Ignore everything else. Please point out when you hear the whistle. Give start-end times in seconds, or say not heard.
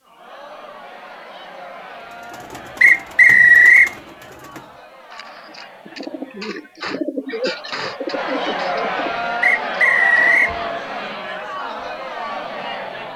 2.8-3.9, 9.4-10.6.